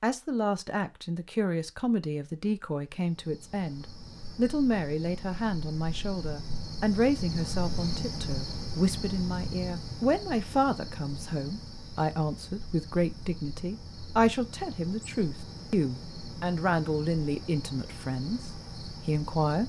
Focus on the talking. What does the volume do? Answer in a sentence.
The loudness of the talking stays about the same.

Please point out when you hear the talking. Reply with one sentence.
The talking can be heard from 0.0 to 19.6 s.